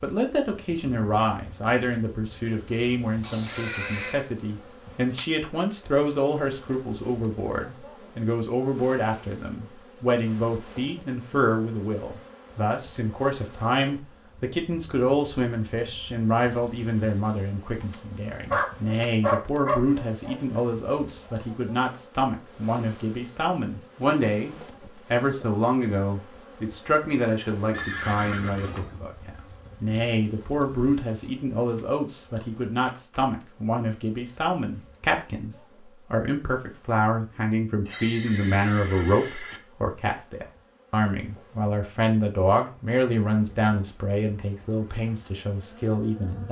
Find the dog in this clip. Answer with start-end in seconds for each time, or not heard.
18.5-20.4.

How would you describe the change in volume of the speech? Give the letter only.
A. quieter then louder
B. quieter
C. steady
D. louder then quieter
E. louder
C.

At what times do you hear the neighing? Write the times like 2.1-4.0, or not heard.
3.2-4.2, 27.7-29.0, 37.9-39.6.